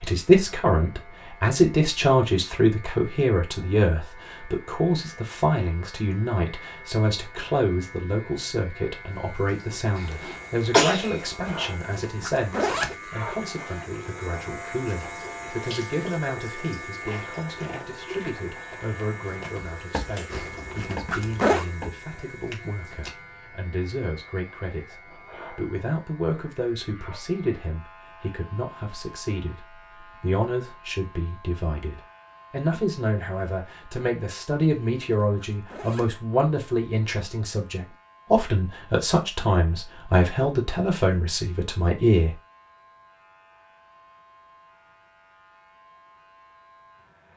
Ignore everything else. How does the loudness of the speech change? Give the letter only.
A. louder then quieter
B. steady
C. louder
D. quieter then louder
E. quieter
D.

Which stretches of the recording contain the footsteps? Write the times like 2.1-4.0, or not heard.
17.0-23.1.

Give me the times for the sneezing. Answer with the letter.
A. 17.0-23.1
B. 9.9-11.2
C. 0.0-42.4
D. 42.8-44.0
B.